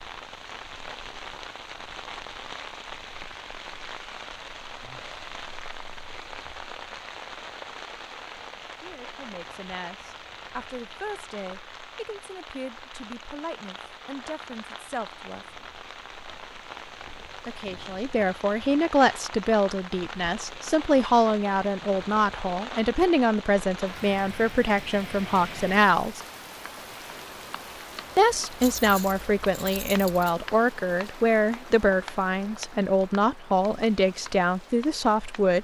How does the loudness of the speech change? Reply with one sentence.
The volume of the speech goes up.